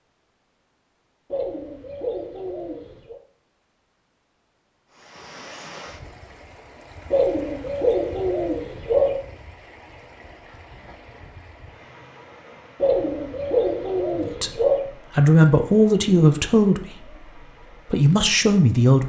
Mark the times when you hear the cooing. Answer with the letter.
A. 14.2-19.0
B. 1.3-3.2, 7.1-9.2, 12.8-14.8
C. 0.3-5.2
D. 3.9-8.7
B.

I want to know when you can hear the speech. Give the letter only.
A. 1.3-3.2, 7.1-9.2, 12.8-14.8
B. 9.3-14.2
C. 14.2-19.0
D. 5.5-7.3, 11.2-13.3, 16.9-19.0
C.